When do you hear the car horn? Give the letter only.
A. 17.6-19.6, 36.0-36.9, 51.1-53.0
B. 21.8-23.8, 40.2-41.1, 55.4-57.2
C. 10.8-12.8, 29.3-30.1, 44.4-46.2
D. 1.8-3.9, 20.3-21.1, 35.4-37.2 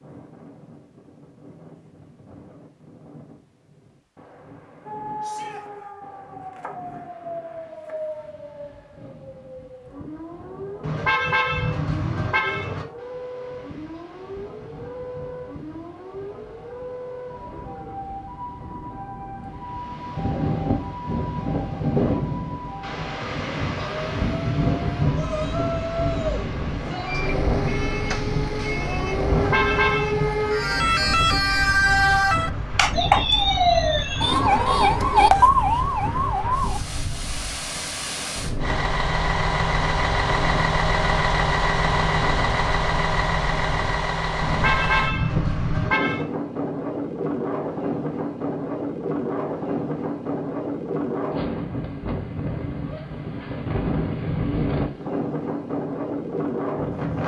C.